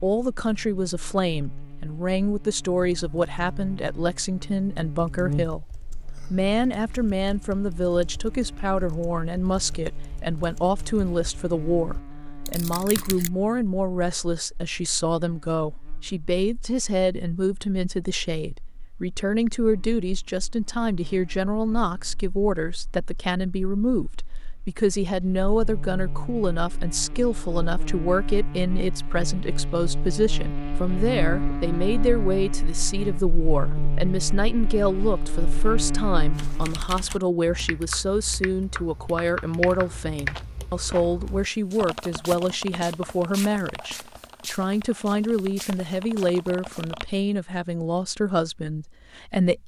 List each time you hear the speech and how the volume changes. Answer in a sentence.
You can hear the speech from 0.0 to 49.6 s, at a steady volume.